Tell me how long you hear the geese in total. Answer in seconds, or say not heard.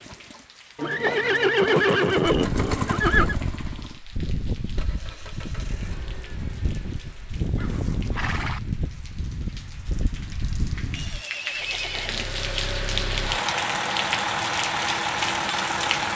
9 s.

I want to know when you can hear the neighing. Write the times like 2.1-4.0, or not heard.
0.8-3.4, 7.5-8.6, 10.9-12.2.